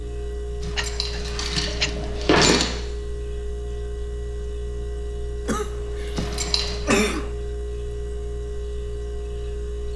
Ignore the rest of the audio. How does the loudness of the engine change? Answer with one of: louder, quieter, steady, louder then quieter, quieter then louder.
steady.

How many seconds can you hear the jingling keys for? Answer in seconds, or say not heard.
3 s.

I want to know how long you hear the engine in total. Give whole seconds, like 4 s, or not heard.
10 s.